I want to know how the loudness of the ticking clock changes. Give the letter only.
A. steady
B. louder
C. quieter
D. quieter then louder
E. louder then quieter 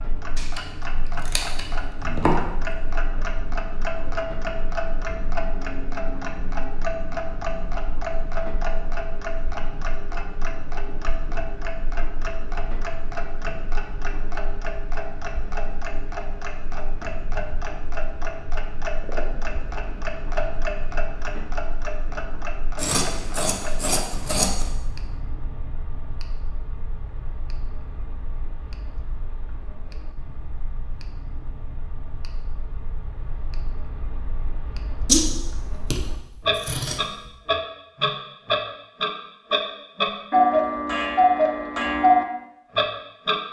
D.